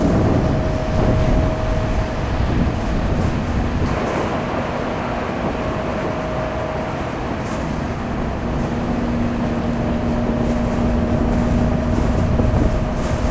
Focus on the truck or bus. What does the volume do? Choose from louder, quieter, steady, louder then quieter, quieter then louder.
steady.